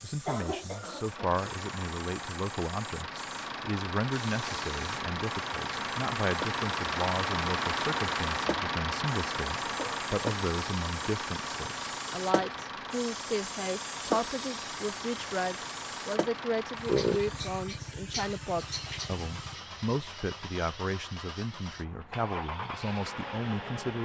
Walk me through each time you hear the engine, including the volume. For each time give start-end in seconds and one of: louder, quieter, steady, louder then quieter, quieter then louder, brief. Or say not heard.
0.0-24.0 louder then quieter.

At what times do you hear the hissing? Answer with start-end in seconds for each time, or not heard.
0.0-19.6.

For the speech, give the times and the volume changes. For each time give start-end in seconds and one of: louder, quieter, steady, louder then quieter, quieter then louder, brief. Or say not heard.
0.0-24.0 steady.